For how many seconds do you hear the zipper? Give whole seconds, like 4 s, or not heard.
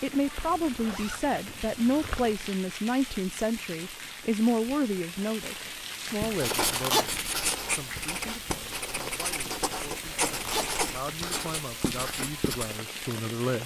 3 s.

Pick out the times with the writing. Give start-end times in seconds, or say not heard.
6.2-12.8.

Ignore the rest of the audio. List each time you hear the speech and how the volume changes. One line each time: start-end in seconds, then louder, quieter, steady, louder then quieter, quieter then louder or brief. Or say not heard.
0.0-13.6 quieter then louder.